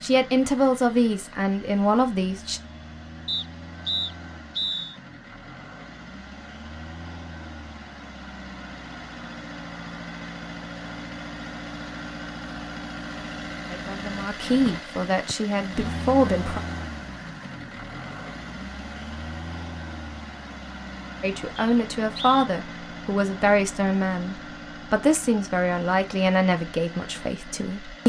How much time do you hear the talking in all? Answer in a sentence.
You can hear the talking for 12 seconds altogether.